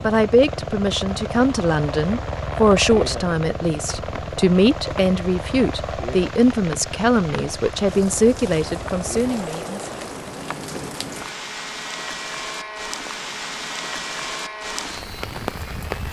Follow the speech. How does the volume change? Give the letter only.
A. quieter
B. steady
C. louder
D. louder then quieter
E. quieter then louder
B.